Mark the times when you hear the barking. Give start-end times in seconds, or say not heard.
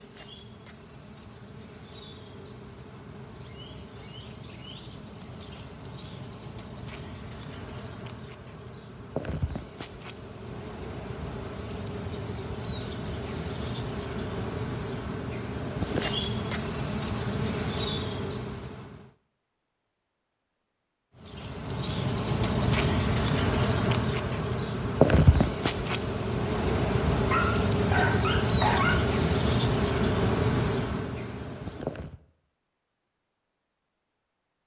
27.3-29.0.